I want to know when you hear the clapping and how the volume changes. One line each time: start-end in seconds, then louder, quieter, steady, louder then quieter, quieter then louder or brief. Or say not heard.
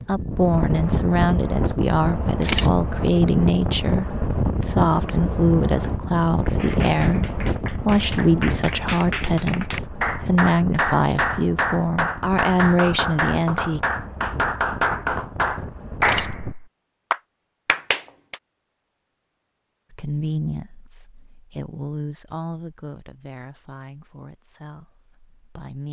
6.5-18.4 louder.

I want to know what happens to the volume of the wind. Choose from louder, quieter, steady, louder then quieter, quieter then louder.
quieter.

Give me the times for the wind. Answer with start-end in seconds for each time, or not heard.
0.0-16.6.